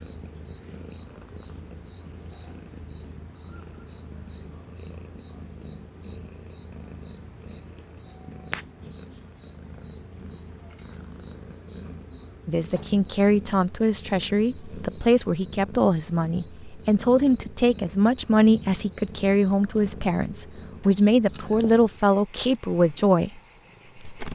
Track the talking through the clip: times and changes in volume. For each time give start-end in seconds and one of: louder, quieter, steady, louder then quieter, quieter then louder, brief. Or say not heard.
12.4-23.3 steady.